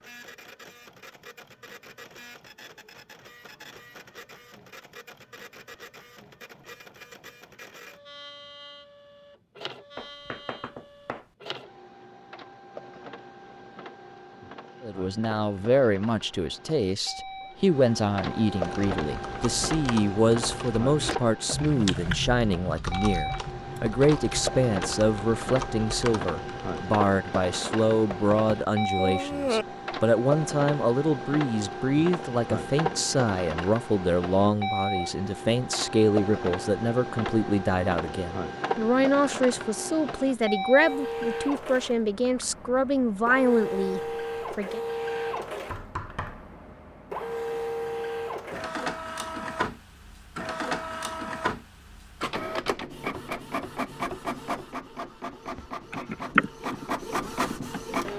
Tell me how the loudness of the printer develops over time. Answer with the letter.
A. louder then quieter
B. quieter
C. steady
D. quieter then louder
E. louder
E.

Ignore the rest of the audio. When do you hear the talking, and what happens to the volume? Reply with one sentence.
You can hear the talking from 14.8 to 44.8 s, at a steady volume.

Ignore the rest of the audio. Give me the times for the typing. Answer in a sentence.
The typing can be heard from 18.6 to 27.0 s and from 55.5 to 57.9 s.